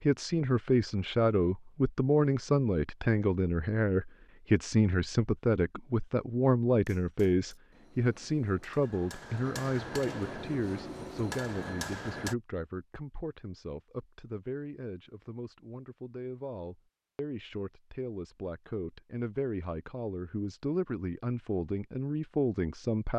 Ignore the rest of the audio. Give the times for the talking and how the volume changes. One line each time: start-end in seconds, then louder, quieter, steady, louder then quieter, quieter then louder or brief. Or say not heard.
0.0-23.1 quieter then louder.